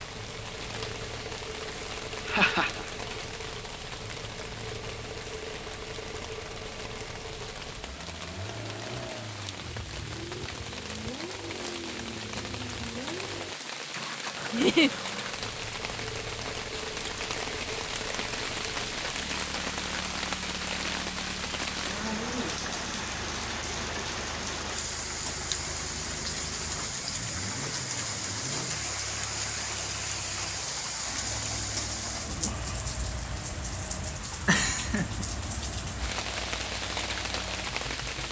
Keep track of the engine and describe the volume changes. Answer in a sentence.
The loudness of the engine stays about the same.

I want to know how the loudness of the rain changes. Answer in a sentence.
The volume of the rain goes up.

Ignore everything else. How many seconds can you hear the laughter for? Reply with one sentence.
The laughter can be heard for 2 seconds in total.